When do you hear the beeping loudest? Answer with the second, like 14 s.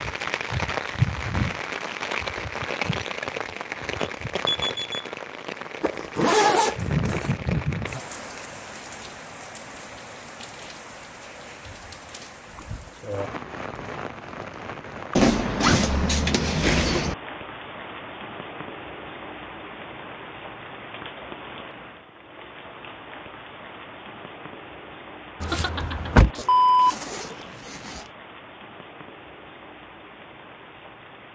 27 s.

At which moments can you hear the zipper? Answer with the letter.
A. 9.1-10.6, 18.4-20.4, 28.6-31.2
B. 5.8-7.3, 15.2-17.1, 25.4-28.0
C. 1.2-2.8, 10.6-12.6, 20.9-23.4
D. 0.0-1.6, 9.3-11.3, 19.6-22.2
B.